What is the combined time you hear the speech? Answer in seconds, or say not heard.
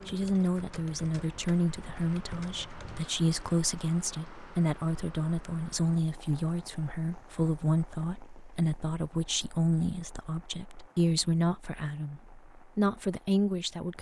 14 s.